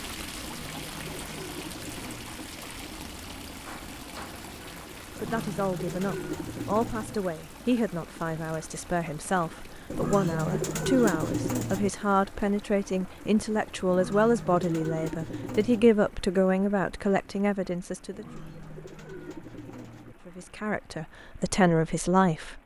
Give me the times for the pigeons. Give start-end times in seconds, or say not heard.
0.4-2.5, 5.2-7.2, 9.9-11.9, 13.8-15.9, 18.1-20.1.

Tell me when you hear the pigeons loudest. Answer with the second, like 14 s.
11 s.